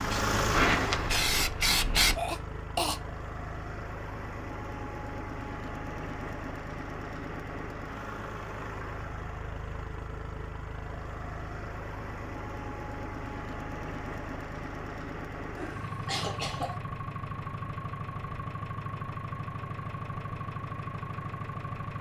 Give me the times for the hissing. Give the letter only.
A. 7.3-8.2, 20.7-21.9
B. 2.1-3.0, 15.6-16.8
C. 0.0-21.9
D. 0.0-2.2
D.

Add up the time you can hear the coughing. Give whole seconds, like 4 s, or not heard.
2 s.